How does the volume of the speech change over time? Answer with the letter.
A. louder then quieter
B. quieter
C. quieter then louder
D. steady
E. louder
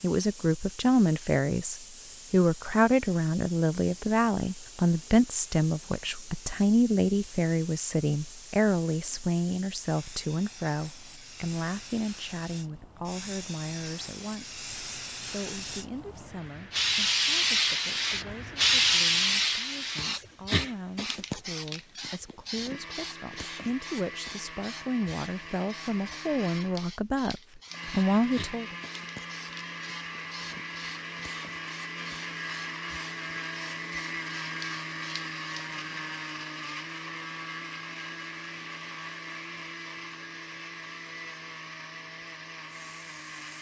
C.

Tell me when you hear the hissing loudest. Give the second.
19 s.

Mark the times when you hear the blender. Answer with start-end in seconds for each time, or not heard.
22.6-43.5.